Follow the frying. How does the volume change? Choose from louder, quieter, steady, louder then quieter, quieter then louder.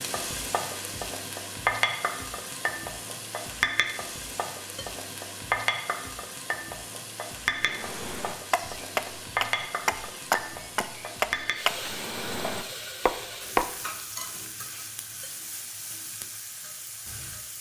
quieter.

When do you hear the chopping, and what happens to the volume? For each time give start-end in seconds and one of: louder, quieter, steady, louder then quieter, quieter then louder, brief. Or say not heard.
7.5-13.8 steady.